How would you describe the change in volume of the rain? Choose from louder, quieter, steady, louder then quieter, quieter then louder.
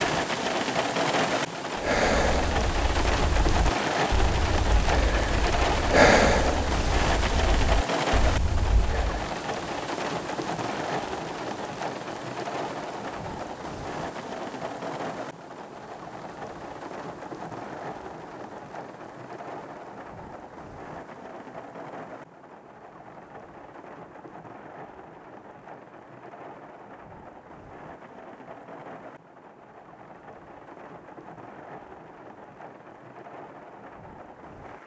quieter.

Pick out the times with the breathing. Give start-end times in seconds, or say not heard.
1.8-9.3.